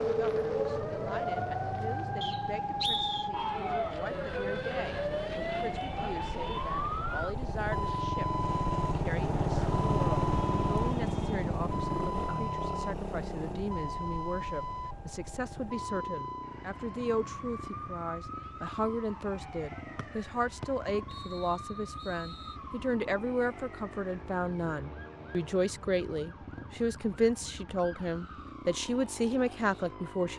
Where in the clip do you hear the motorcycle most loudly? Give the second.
10 s.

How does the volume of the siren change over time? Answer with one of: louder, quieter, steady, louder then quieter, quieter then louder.
quieter.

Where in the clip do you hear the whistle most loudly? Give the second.
3 s.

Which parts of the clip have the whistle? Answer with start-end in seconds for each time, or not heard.
2.2-3.3, 19.9-22.6.